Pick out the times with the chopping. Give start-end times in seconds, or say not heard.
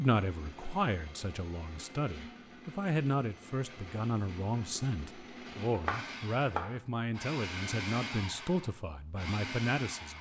5.8-6.8.